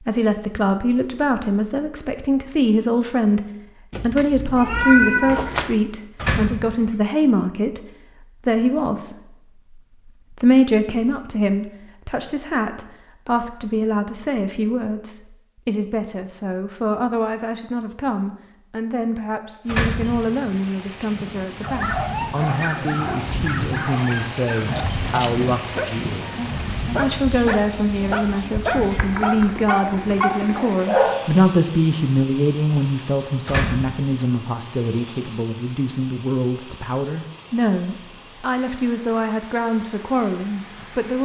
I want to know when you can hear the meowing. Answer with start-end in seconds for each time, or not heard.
3.9-5.8, 24.6-25.6, 28.8-29.4.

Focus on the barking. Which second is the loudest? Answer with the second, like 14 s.
31 s.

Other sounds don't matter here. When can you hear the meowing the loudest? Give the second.
5 s.